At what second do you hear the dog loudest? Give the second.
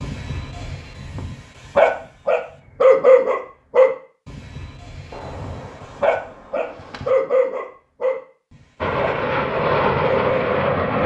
3 s.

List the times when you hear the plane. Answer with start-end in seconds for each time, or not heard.
8.8-11.0.